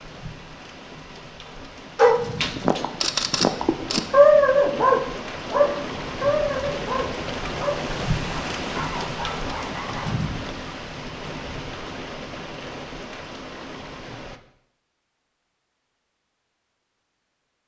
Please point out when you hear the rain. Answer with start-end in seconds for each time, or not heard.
0.0-14.4.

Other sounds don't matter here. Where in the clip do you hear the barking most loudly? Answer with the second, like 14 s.
4 s.